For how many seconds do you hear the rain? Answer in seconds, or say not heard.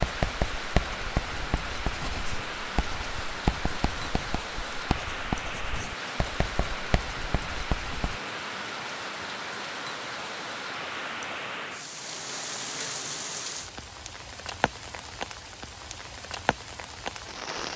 18 s.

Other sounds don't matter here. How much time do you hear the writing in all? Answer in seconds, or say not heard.
8 s.